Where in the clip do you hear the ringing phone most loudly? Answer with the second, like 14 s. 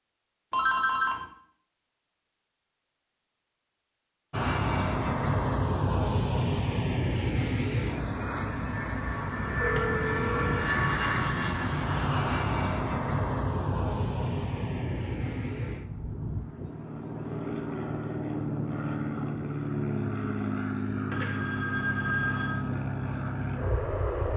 1 s.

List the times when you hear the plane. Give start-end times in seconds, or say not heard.
4.3-24.3.